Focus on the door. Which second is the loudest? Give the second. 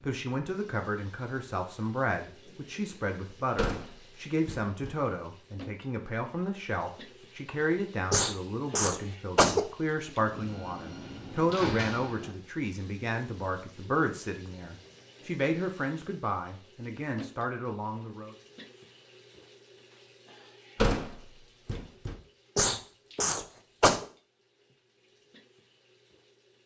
21 s.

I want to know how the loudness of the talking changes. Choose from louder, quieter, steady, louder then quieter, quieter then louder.
steady.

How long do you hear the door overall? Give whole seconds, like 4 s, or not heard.
5 s.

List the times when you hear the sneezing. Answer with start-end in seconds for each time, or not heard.
8.1-9.6, 22.6-24.1.